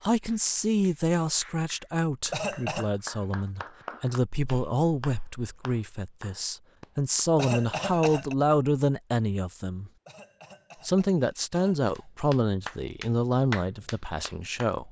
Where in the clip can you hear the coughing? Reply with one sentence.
The coughing can be heard from 2.3 to 2.9 s, from 7.3 to 8.3 s and from 10.1 to 12.1 s.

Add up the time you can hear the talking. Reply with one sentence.
The talking can be heard for 14 seconds in total.